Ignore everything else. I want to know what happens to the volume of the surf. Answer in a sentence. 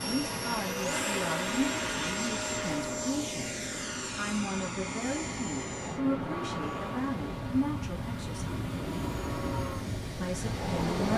The loudness of the surf goes up.